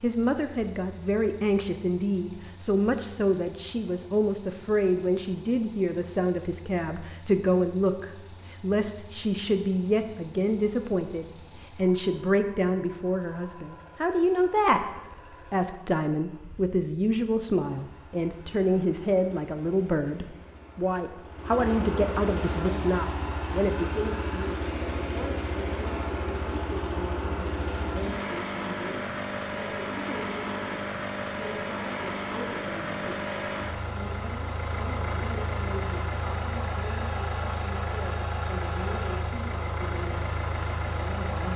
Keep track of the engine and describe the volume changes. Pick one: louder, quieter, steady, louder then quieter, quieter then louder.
louder.